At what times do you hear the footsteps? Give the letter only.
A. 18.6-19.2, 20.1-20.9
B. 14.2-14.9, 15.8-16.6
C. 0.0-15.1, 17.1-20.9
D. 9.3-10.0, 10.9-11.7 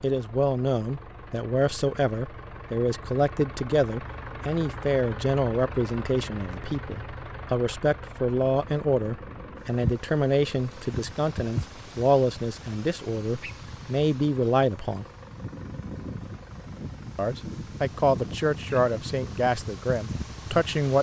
D.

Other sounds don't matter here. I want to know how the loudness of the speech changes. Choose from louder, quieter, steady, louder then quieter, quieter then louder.
steady.